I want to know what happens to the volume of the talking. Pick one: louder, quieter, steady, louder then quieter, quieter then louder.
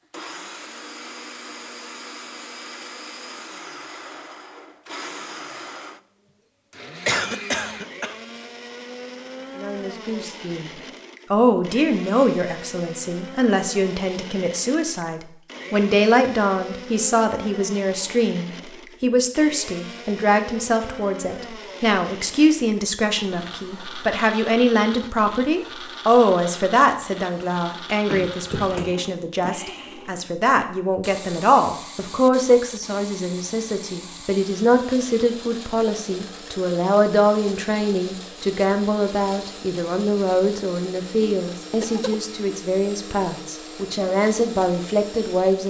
steady.